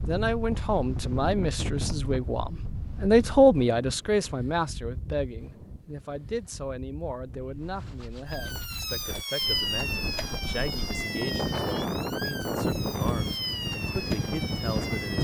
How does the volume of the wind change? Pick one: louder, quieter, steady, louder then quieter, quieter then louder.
quieter then louder.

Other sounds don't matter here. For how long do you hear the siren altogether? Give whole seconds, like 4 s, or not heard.
7 s.